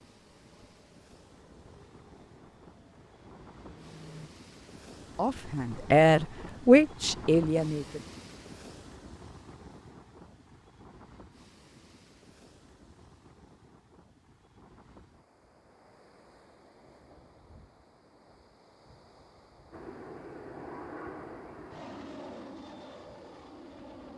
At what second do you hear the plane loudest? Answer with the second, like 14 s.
21 s.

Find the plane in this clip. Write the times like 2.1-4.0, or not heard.
0.0-4.3, 19.7-24.1.